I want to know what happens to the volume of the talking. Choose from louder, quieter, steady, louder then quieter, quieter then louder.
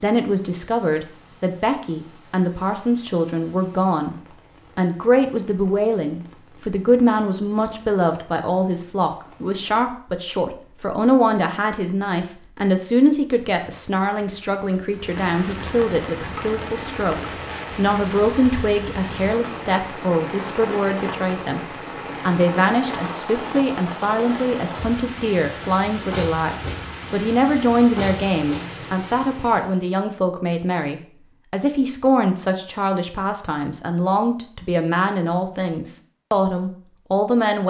steady.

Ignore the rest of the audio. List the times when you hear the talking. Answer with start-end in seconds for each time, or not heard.
0.0-4.2, 4.8-21.6, 22.2-37.6.